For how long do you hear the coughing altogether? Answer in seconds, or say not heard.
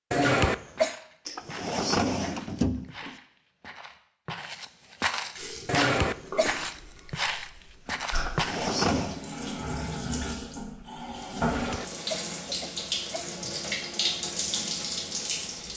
4 s.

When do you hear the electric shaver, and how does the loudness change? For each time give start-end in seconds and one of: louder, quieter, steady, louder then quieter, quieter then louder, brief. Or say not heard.
not heard.